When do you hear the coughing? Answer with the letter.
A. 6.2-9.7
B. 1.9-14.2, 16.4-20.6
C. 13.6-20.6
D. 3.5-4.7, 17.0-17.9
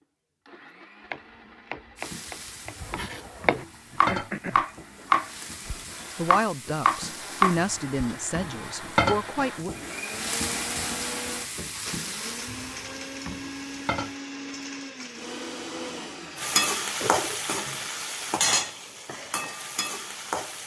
D.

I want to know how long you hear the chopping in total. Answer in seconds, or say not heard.
7 s.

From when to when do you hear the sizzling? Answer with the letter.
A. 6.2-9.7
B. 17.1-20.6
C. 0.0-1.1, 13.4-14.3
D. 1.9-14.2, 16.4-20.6
D.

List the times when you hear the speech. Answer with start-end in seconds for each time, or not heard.
6.2-9.7.